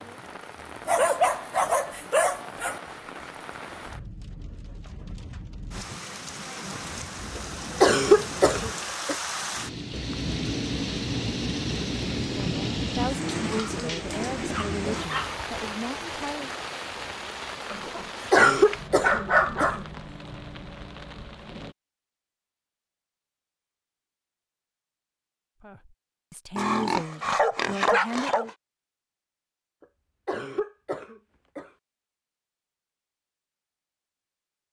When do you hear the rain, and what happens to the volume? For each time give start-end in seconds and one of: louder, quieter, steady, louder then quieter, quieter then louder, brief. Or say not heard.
0.0-21.8 louder then quieter.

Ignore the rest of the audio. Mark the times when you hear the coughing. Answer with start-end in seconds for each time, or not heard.
7.3-9.2, 17.9-19.8, 29.8-31.7.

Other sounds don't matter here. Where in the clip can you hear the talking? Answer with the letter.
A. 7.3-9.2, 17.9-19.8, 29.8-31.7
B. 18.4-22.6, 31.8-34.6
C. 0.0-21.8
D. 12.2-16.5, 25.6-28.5
D.